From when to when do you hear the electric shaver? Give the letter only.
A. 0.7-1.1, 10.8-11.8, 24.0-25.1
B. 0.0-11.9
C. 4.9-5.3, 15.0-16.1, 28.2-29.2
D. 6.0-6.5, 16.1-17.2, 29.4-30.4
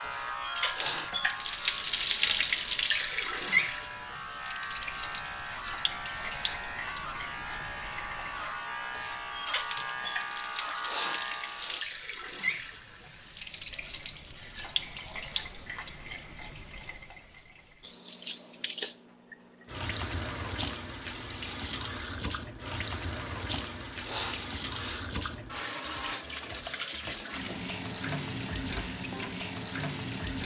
B.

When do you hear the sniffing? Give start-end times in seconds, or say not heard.
0.7-1.1, 10.8-11.8, 24.0-25.1.